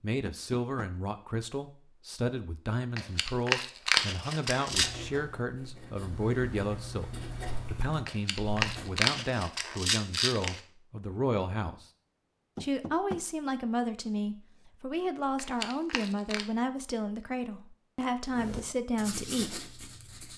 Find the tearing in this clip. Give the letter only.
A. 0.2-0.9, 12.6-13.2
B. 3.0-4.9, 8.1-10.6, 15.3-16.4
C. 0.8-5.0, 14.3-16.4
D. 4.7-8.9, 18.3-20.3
B.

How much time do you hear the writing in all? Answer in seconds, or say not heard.
6 s.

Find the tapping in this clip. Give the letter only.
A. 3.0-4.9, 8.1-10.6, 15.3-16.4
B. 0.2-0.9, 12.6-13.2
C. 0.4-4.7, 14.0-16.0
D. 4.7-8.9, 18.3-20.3
B.